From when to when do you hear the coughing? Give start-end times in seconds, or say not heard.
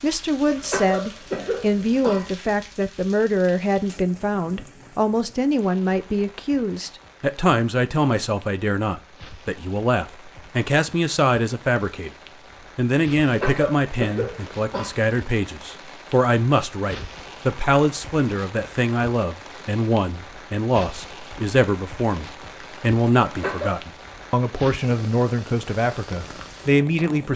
0.5-2.4, 13.2-14.9, 23.2-23.8.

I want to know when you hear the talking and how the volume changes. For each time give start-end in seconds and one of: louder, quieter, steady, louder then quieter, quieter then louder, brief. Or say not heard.
0.0-12.2 steady
12.8-27.3 steady.